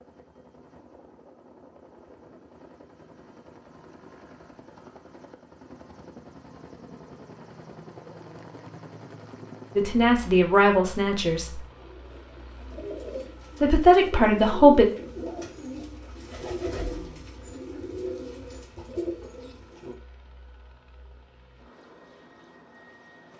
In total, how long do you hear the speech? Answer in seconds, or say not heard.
3 s.